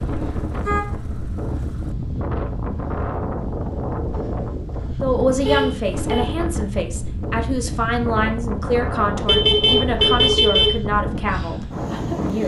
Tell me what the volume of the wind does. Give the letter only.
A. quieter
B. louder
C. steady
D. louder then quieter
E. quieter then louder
C.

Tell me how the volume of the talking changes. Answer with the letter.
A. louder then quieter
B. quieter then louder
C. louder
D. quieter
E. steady
E.